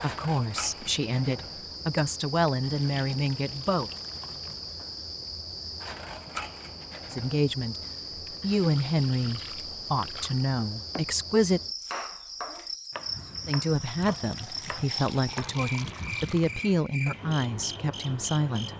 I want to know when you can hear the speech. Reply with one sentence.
You can hear the speech from 0.0 to 3.9 s, from 7.1 to 11.6 s and from 13.4 to 18.7 s.